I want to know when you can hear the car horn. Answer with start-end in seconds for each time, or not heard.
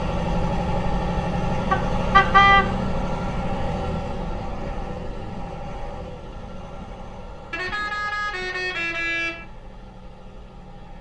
1.7-2.7, 7.5-9.4.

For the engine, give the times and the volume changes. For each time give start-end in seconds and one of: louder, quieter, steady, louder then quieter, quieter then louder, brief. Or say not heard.
0.0-10.9 quieter.